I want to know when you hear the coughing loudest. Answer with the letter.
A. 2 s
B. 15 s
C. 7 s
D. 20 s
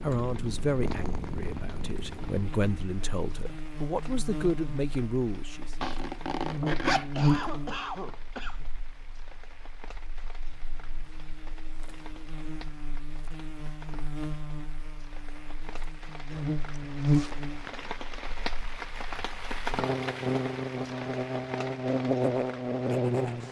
C.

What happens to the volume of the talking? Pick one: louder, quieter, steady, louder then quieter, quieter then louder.
quieter then louder.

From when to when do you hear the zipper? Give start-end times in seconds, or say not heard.
5.8-7.5, 16.3-17.8.